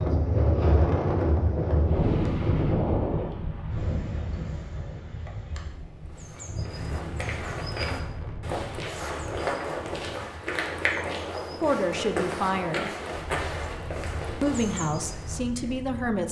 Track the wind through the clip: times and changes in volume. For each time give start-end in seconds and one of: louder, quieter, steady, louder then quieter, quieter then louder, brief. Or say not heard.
0.0-16.2 quieter.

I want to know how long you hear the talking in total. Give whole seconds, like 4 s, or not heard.
3 s.